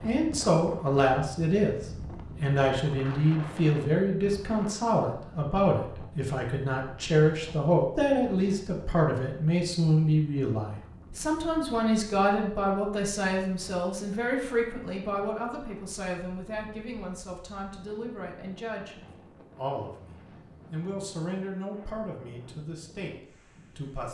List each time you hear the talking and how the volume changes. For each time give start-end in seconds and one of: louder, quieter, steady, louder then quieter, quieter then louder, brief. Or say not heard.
0.0-24.0 quieter.